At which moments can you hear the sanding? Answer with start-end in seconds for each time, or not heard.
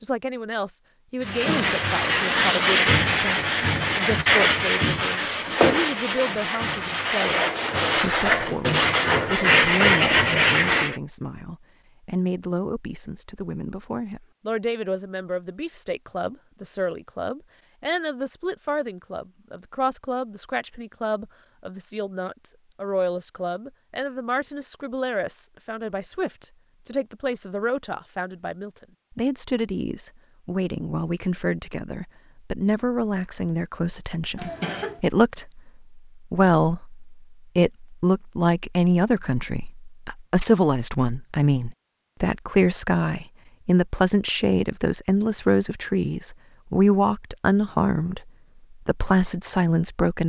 1.2-11.0.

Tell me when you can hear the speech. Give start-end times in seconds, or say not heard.
0.0-48.2, 48.9-50.2.